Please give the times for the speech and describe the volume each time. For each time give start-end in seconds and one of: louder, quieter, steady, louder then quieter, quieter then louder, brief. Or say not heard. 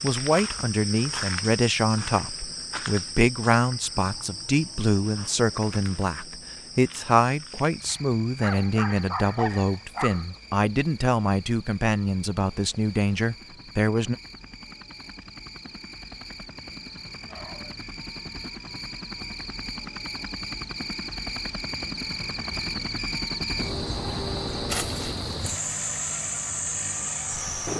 0.0-14.2 steady.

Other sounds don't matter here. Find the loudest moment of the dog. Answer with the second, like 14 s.
9 s.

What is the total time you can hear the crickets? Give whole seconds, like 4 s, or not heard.
28 s.